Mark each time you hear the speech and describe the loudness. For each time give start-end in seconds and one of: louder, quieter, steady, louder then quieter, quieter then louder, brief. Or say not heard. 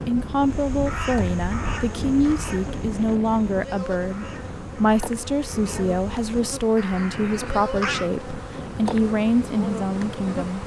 0.1-10.6 steady.